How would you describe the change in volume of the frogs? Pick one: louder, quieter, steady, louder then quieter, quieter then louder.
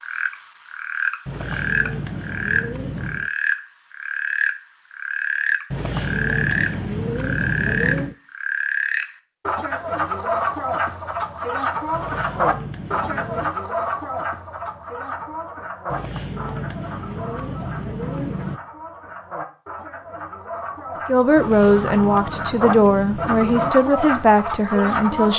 quieter then louder.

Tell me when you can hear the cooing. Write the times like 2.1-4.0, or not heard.
1.2-3.3, 5.7-8.2, 11.9-13.5, 15.8-18.6, 21.4-23.8.